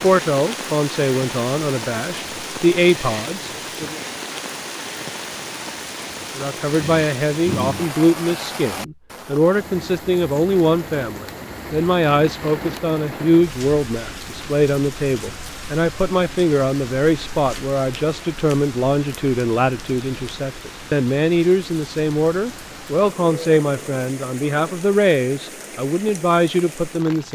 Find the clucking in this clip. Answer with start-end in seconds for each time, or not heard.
not heard.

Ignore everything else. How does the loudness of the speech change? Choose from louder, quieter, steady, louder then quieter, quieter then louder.
steady.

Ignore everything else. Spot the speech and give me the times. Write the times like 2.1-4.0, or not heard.
0.0-4.0, 6.3-27.3.